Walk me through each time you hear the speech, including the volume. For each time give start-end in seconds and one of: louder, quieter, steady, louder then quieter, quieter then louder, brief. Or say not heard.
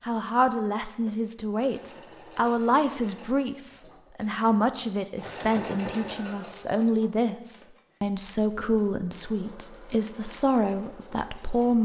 0.0-11.8 steady.